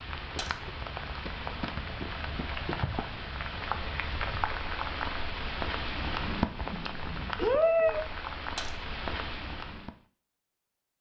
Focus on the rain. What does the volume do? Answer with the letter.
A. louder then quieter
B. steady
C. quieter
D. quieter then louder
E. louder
E.